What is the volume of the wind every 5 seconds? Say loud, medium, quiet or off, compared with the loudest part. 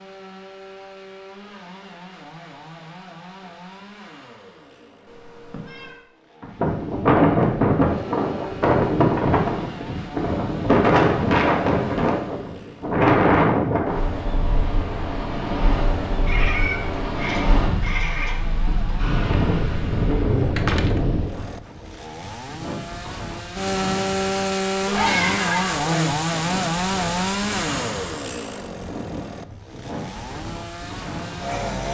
off, loud, loud, medium, medium, quiet, quiet.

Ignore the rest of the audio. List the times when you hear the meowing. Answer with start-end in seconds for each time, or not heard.
5.0-6.0, 16.2-18.4, 24.8-26.1.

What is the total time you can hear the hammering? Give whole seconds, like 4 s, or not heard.
not heard.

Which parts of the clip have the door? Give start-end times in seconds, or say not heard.
20.6-21.9.